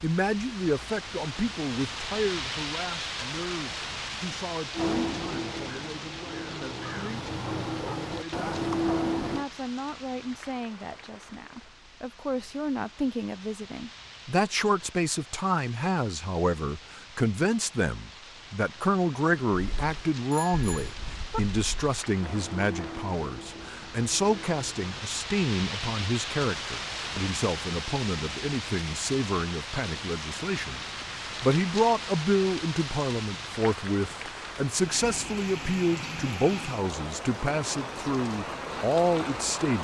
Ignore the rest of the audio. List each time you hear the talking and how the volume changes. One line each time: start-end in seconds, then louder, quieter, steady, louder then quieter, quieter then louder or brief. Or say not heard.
0.0-39.7 louder.